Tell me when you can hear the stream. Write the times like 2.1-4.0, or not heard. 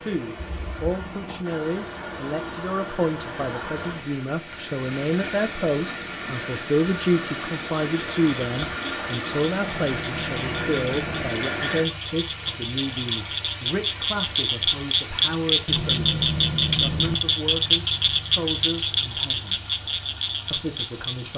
0.0-21.3.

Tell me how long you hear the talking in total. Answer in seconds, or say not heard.
20 s.